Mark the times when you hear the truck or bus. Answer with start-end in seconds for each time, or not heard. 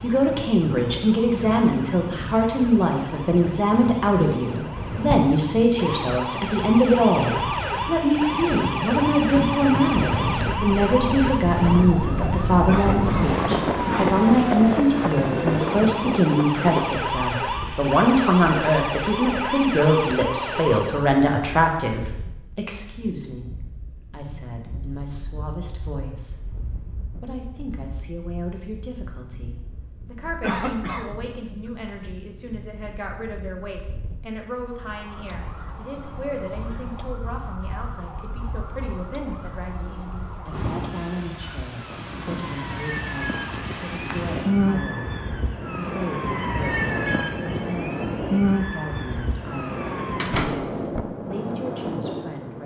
not heard.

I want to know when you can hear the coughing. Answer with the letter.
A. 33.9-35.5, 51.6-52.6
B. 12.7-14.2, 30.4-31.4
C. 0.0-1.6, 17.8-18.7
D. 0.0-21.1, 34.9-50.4
B.